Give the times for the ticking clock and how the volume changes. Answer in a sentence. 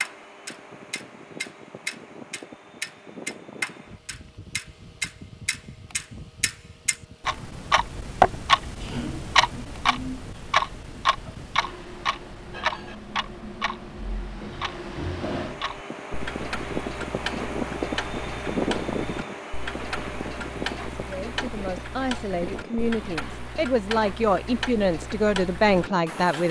You can hear the ticking clock from 0.0 to 26.4 s, getting louder then quieter.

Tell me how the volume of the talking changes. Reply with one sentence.
The volume of the talking goes up.